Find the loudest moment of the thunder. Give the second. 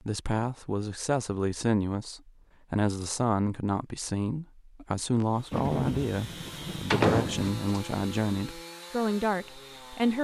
6 s.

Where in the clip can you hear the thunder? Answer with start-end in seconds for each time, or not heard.
5.5-7.5.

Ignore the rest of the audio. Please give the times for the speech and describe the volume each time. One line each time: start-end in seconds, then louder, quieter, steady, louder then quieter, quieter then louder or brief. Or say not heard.
0.1-10.1 steady.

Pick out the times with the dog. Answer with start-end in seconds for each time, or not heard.
not heard.